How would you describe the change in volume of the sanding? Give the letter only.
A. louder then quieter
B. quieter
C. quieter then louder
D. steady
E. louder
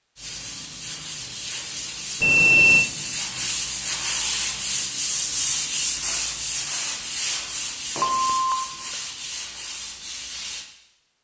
A.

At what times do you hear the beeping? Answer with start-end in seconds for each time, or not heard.
2.2-2.9, 8.0-8.9.